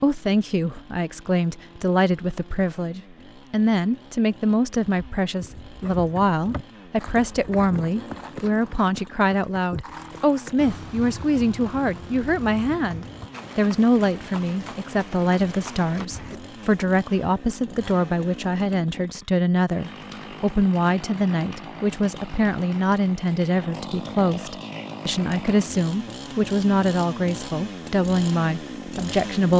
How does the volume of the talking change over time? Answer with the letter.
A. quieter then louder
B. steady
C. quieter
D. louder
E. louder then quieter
B.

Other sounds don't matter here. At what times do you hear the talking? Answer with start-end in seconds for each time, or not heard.
0.0-29.5.